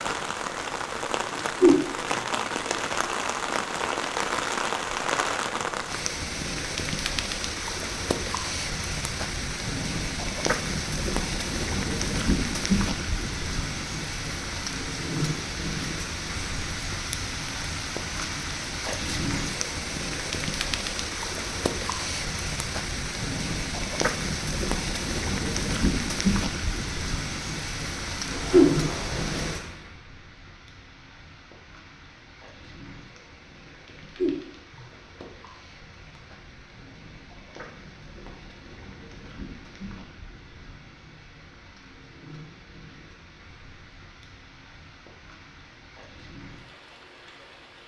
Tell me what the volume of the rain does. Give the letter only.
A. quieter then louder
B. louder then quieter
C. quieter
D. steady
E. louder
C.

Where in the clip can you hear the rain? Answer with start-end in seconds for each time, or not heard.
0.0-47.8.